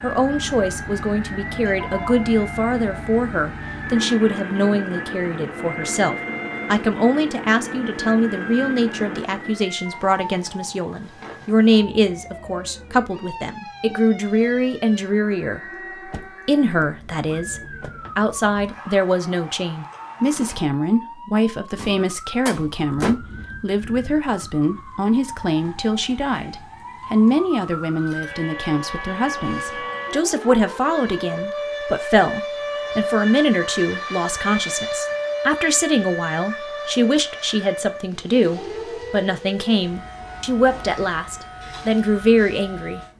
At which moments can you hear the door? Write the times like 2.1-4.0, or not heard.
16.1-17.9, 21.8-23.1.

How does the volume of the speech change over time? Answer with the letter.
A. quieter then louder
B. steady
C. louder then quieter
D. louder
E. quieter
B.